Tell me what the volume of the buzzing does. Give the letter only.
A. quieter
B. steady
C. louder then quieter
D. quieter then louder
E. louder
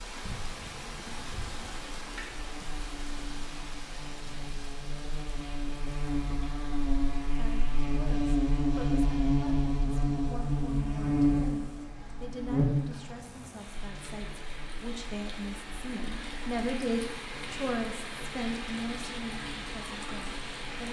C.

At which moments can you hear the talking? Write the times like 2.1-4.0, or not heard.
7.3-20.8.